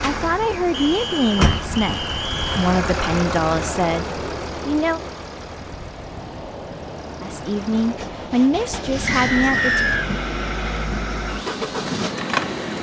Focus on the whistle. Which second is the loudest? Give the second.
10 s.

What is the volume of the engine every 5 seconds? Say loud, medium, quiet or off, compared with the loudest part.
loud, medium, loud.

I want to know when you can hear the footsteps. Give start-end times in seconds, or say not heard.
not heard.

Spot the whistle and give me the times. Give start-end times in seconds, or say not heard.
0.7-2.7, 9.1-10.1.